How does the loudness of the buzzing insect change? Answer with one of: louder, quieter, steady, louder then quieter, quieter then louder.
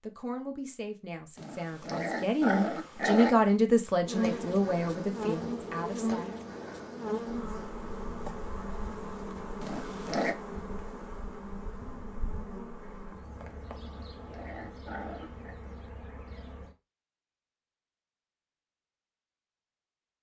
quieter.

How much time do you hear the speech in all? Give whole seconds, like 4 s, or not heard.
6 s.